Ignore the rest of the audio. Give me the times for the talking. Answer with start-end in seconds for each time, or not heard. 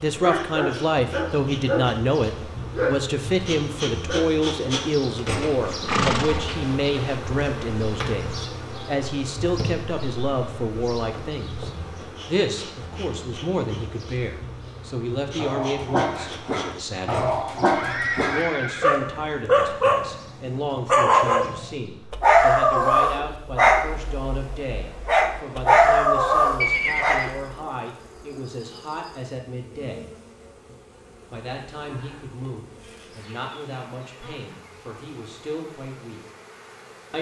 0.0-17.3, 18.2-30.1, 31.3-36.2.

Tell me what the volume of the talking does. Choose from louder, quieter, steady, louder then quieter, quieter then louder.
quieter.